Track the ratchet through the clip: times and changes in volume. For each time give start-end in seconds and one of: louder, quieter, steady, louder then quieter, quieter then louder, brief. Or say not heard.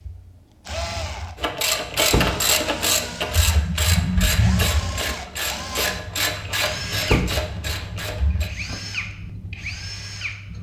1.4-8.5 quieter.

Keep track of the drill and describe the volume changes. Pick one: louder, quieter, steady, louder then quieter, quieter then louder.
steady.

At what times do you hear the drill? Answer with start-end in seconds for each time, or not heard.
0.0-10.5.